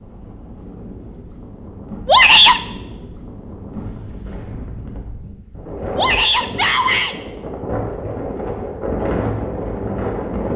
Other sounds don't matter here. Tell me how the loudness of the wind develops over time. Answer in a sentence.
The loudness of the wind goes up.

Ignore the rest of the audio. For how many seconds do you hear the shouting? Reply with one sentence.
You can hear the shouting for 2 seconds altogether.